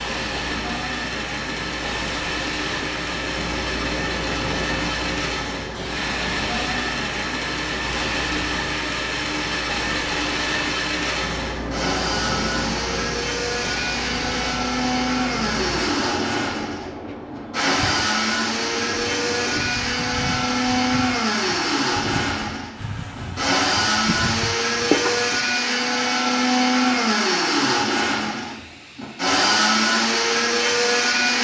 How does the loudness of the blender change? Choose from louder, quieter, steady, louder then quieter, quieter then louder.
louder.